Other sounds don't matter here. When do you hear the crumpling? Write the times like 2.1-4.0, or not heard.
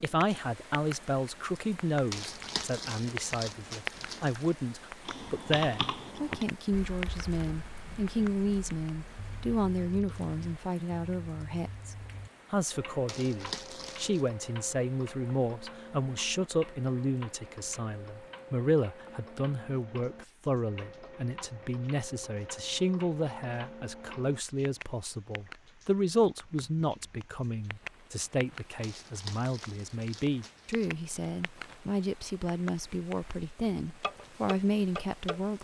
2.1-4.5, 13.1-14.3, 28.8-30.9.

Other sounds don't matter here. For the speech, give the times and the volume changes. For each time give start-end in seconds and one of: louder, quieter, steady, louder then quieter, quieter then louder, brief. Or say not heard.
0.0-35.6 steady.